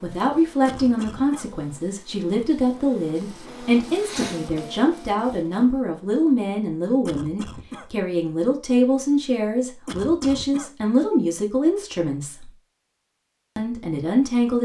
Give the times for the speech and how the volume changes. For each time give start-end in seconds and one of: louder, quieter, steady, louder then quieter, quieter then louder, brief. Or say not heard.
0.0-12.5 steady
13.6-14.6 brief.